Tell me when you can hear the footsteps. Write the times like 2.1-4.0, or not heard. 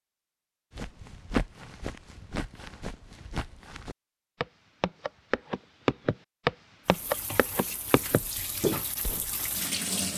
0.7-9.3.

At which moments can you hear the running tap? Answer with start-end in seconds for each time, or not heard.
6.8-10.1.